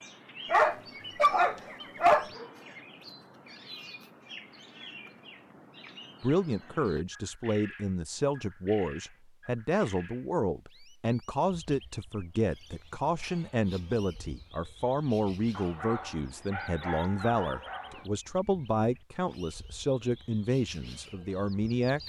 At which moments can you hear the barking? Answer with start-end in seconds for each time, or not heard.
0.5-2.3, 15.5-18.1.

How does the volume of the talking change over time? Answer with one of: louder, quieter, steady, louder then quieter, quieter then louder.
steady.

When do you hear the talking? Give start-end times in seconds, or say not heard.
6.2-22.0.